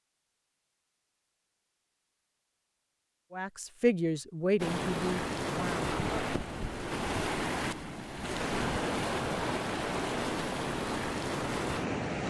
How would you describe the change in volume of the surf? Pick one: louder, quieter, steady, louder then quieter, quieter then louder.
steady.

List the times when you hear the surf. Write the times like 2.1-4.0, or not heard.
4.5-12.2.